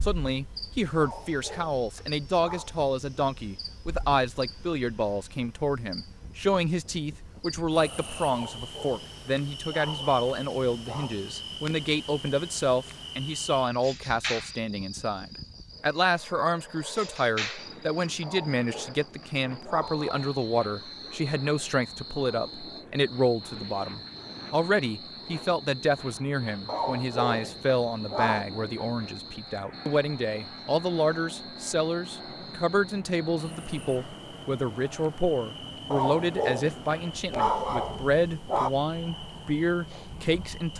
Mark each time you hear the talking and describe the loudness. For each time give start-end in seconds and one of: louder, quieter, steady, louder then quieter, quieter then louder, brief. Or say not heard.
0.0-40.7 steady.